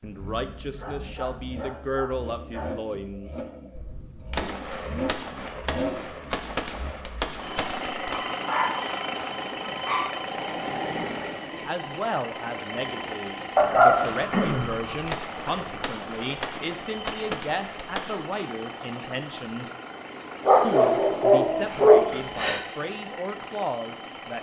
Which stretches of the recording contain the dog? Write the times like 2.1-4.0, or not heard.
0.7-2.8, 8.3-10.1, 13.6-14.8, 20.4-22.6.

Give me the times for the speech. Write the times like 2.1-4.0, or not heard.
0.0-3.4, 11.7-19.7, 20.6-24.3.